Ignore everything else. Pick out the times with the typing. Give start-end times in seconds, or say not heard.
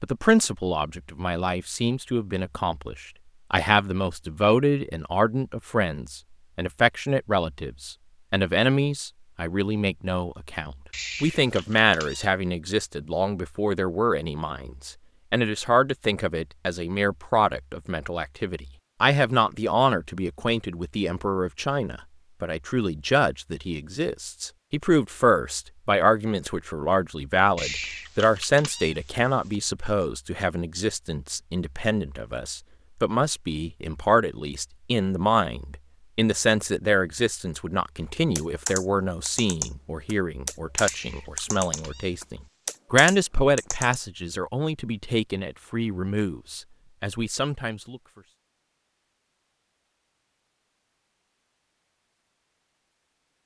38.0-44.0.